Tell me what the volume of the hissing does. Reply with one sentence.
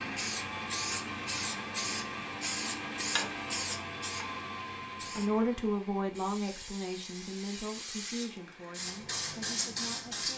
The volume of the hissing goes down, then up.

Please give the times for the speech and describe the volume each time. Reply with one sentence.
The speech can be heard from 5.2 to 10.3 s, getting quieter.